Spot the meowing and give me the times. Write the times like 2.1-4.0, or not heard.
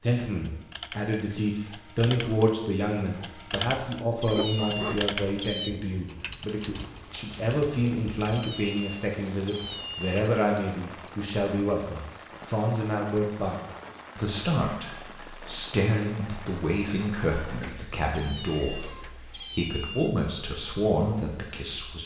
4.2-5.8, 8.2-10.2, 18.1-20.1.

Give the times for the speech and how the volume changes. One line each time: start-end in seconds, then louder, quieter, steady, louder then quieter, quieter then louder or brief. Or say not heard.
0.0-22.0 steady.